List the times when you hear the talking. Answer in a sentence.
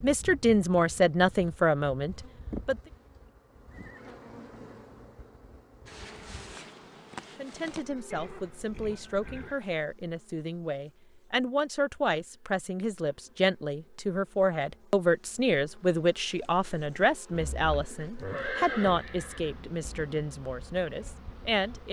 You can hear the talking from 0.0 to 2.8 s and from 7.3 to 21.8 s.